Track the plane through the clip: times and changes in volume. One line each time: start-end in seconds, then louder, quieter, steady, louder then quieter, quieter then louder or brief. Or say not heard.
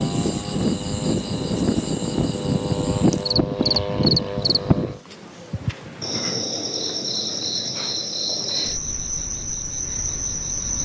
0.0-5.0 steady.